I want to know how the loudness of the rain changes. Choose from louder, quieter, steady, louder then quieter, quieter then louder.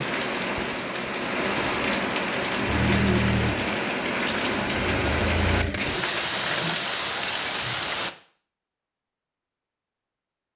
steady.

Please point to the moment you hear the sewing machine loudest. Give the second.
3 s.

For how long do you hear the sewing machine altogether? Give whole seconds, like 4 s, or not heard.
4 s.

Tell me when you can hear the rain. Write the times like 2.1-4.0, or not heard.
0.0-8.2.